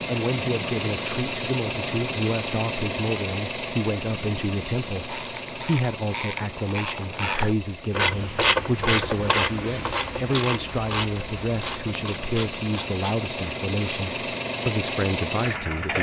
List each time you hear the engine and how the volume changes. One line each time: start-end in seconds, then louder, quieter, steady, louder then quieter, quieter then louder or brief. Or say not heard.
0.0-15.9 quieter then louder.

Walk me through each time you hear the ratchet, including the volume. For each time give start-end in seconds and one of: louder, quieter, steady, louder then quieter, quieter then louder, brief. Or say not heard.
5.0-13.2 louder then quieter.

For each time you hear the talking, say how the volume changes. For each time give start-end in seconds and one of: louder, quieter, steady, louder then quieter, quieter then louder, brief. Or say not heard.
0.1-15.9 steady.